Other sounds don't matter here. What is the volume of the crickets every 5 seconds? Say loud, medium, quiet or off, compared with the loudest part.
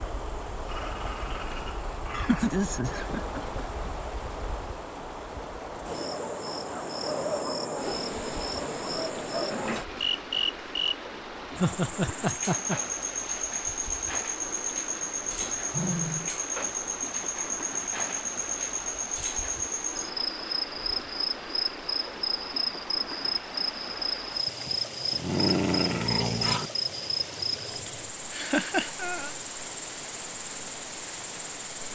medium, loud, loud, loud, loud, medium, medium.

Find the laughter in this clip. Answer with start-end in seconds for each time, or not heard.
2.1-3.6, 11.6-12.8, 28.3-29.4.